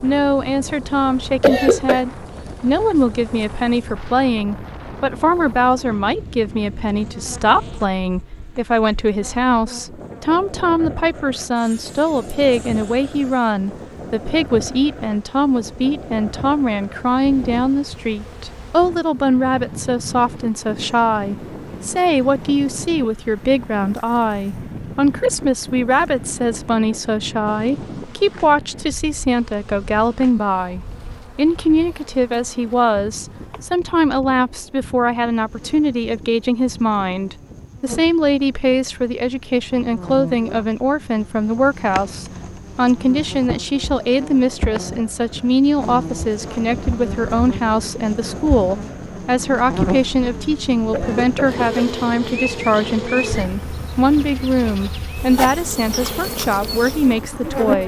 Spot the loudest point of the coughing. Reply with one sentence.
The volume of the coughing peaks at 2 seconds.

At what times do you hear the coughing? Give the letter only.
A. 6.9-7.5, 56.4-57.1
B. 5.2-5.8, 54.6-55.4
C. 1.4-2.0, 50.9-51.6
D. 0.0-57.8
C.